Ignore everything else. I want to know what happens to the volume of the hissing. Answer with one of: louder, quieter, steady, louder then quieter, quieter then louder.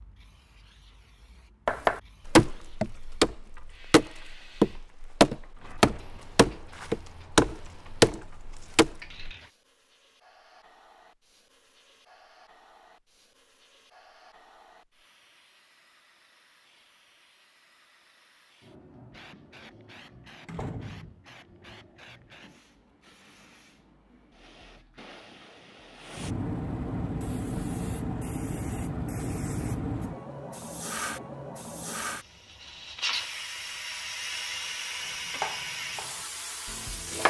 louder.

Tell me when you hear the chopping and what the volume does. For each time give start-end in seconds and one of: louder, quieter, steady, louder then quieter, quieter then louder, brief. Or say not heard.
1.6-9.3 steady
35.0-37.2 brief.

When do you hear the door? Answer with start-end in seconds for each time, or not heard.
20.4-21.2.